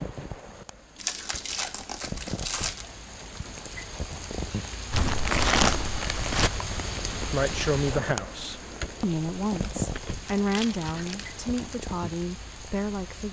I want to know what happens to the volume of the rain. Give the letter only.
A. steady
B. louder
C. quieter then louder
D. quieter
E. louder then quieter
E.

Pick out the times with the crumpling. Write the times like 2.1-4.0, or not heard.
0.9-2.9, 4.9-6.5, 9.4-11.8.